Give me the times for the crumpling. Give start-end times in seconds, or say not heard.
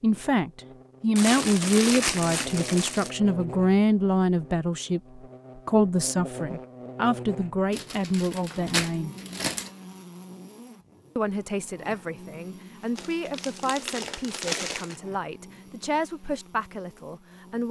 1.1-3.1, 7.7-9.7, 12.9-15.0.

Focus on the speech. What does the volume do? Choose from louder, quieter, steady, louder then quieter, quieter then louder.
quieter.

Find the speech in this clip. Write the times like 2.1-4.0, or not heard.
0.0-9.2, 11.2-17.6.